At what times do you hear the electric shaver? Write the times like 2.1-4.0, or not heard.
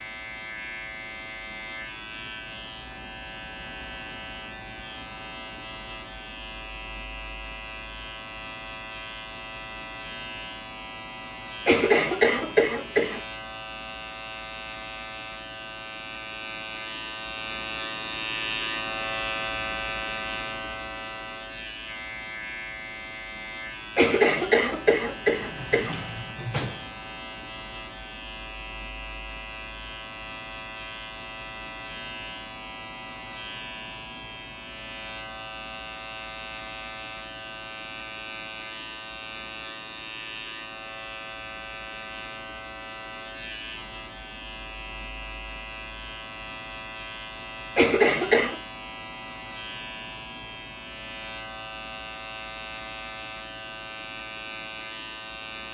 0.0-55.6.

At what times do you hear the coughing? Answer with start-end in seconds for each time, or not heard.
11.7-13.2, 23.9-25.9, 47.8-48.6.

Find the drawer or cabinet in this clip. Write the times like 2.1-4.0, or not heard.
25.4-26.9.